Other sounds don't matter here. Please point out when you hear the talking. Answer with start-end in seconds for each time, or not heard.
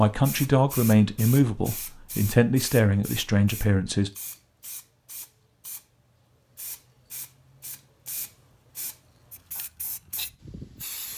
0.0-4.1.